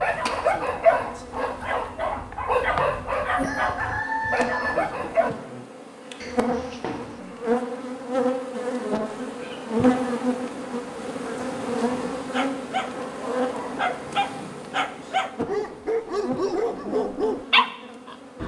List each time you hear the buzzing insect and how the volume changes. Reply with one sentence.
You can hear the buzzing insect from 0.0 to 18.4 s, getting louder then quieter.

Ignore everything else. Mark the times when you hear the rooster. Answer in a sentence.
The rooster can be heard from 3.4 to 4.7 s.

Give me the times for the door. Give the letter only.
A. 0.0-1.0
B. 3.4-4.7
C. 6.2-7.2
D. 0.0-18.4
C.